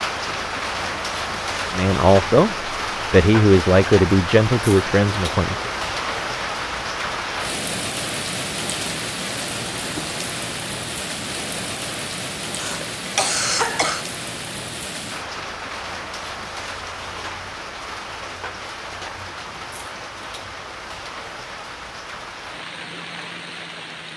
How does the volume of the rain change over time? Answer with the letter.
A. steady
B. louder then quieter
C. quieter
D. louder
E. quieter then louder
C.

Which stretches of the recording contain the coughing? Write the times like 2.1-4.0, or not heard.
12.6-14.1.